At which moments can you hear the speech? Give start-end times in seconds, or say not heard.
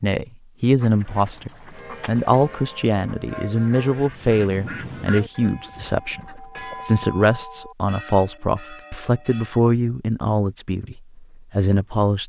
0.0-12.2.